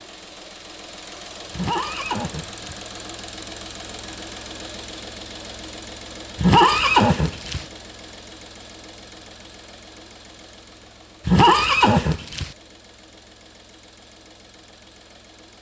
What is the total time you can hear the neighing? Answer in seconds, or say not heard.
4 s.